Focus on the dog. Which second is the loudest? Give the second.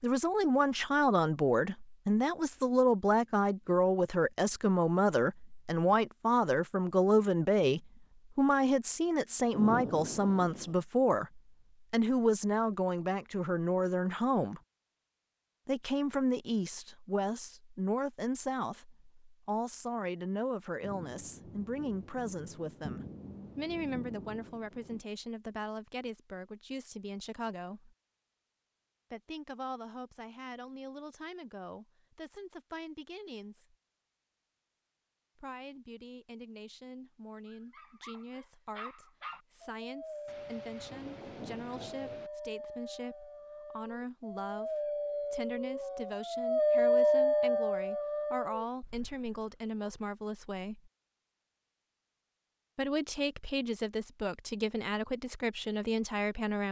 47 s.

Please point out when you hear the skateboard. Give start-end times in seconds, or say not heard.
not heard.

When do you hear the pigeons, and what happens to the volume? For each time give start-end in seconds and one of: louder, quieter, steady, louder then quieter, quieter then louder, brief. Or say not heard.
not heard.